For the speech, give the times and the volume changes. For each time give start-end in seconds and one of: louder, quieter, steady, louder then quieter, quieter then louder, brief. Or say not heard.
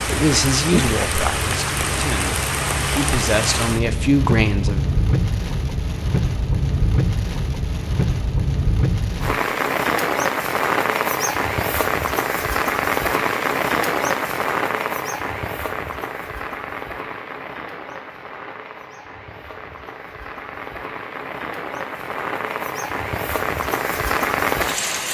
0.0-4.8 quieter then louder.